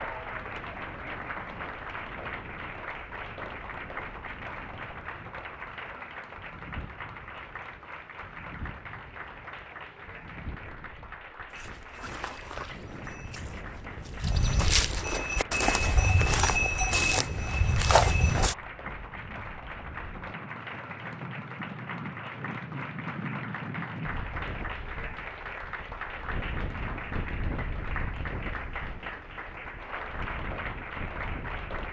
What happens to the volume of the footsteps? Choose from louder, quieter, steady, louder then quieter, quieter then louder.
louder.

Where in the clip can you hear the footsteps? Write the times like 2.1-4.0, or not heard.
11.5-18.6.